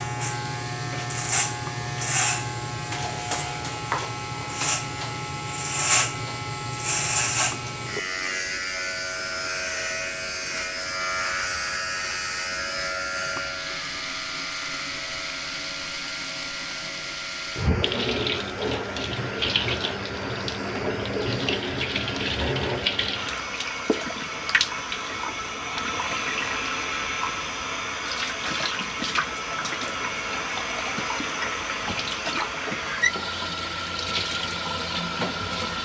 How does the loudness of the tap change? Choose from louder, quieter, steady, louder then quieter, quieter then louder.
louder.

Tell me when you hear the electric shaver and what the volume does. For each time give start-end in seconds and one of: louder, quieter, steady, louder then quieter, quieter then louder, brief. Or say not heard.
0.0-35.8 quieter.